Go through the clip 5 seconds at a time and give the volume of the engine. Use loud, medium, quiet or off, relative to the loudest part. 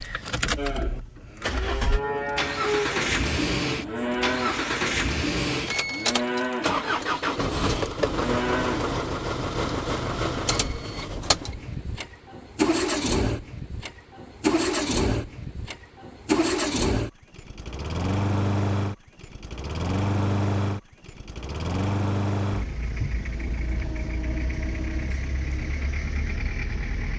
loud, loud, loud, loud, loud, medium.